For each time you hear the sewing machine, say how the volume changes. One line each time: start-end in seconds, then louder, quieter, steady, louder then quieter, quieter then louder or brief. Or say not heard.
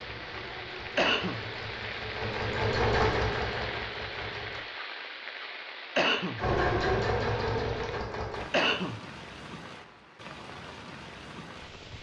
0.0-4.7 louder then quieter
6.3-8.5 brief.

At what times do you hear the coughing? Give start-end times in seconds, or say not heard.
0.9-1.4, 6.0-6.4, 8.5-9.0.